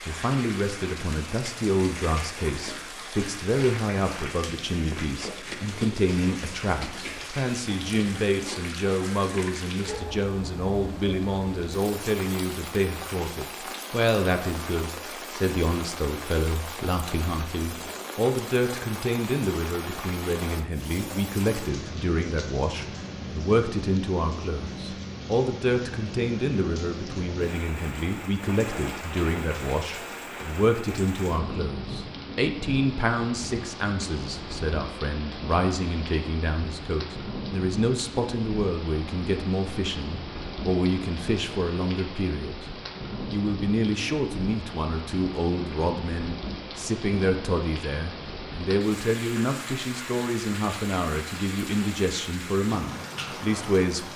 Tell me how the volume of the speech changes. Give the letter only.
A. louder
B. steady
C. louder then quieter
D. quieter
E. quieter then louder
B.